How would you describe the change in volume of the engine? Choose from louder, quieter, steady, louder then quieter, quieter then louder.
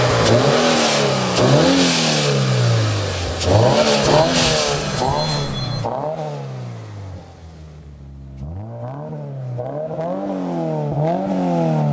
quieter then louder.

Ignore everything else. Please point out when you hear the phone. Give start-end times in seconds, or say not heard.
4.1-5.8.